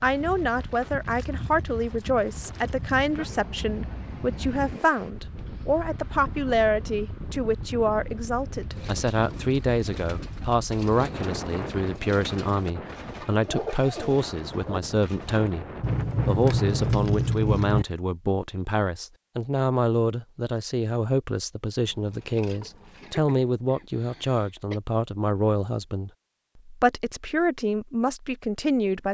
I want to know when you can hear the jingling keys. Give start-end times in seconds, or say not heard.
1.1-3.0, 15.8-17.9, 21.8-23.1.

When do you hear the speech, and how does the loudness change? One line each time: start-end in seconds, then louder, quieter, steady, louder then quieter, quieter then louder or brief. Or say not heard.
0.0-15.7 steady
16.2-29.0 steady.